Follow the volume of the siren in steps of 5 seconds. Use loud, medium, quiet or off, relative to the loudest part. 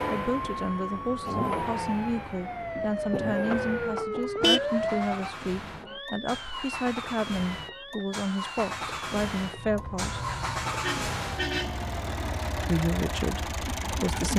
loud, medium, medium.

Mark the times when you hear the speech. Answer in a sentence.
The speech can be heard from 0.1 to 10.2 s and from 12.7 to 14.3 s.